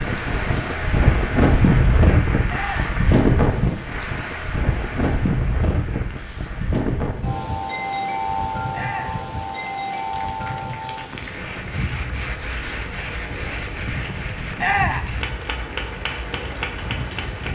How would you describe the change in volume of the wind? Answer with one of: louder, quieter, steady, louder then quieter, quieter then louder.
quieter.